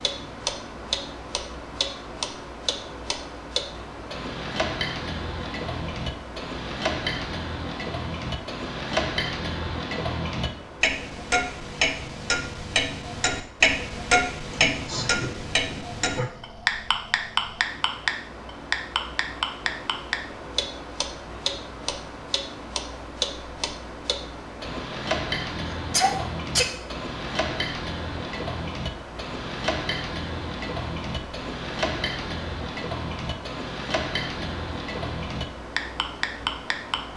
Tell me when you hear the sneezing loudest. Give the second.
26 s.